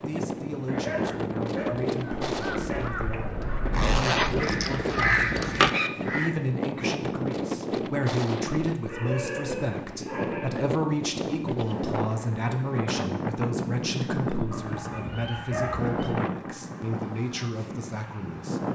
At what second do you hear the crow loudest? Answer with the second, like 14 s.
5 s.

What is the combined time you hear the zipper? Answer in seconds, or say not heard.
2 s.